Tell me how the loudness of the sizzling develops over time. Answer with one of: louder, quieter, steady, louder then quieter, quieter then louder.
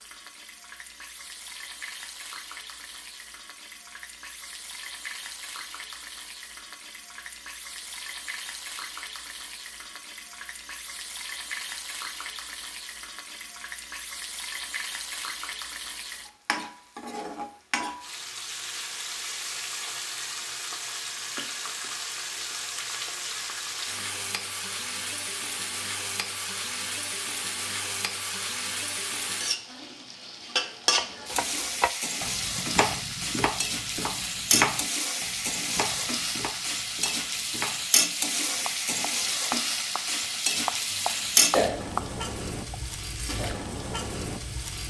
louder.